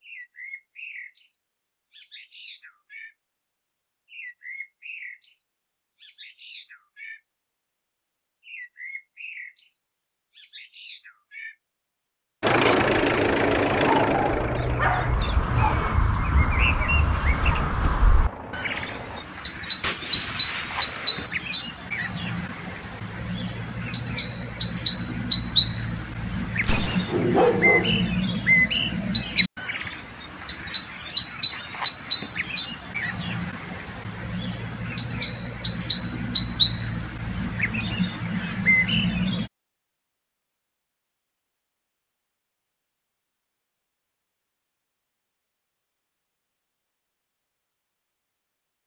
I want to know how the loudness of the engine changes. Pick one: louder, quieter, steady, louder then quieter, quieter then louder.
quieter.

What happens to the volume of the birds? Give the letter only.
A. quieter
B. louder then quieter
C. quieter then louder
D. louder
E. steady
D.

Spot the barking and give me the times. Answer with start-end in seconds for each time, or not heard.
13.8-15.8, 27.1-28.1.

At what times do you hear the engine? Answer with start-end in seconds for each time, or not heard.
12.4-19.2.